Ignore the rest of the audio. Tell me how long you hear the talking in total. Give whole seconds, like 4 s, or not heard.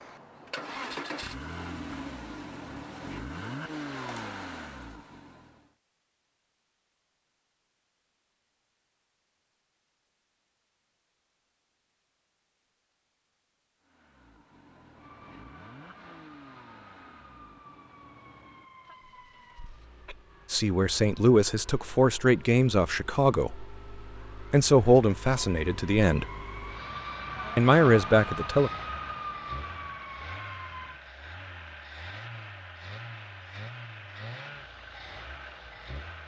6 s.